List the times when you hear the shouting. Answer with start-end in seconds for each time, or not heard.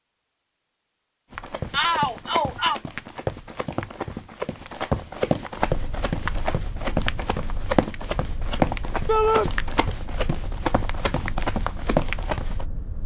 1.7-2.8, 9.1-9.5.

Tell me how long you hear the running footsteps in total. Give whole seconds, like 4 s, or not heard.
11 s.